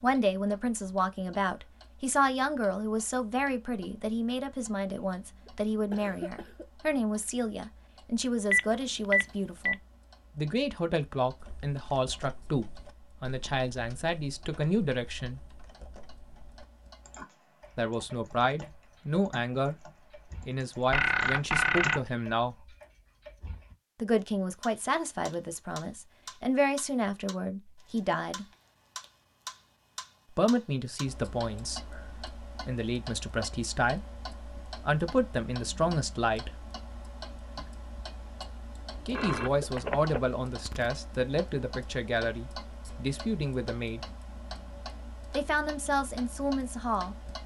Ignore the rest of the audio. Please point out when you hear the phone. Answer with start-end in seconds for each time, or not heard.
8.5-9.8, 20.9-22.1, 38.9-40.9.